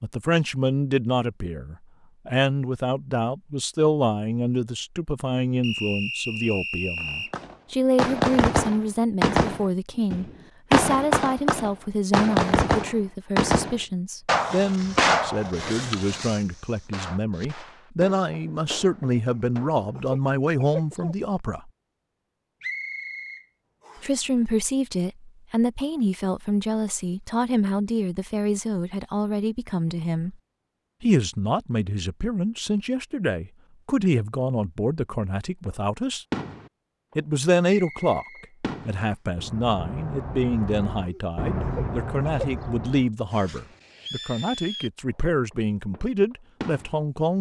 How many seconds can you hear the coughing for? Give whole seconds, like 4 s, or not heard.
4 s.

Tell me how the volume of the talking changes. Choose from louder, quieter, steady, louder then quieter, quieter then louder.
steady.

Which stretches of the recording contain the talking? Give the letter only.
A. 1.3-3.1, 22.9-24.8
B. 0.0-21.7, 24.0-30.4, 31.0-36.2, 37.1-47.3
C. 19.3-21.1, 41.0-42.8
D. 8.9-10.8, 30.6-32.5
B.